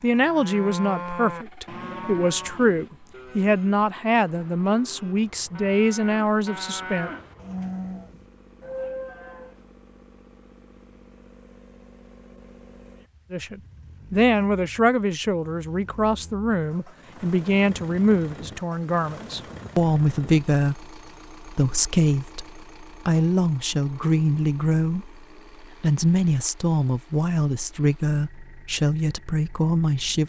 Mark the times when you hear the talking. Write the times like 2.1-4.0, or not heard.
0.0-7.1, 13.3-30.2.